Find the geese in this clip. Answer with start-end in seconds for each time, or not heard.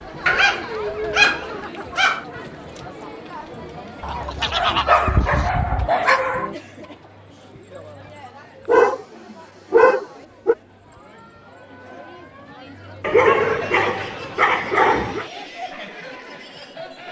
4.0-5.5.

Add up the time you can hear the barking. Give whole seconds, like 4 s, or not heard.
8 s.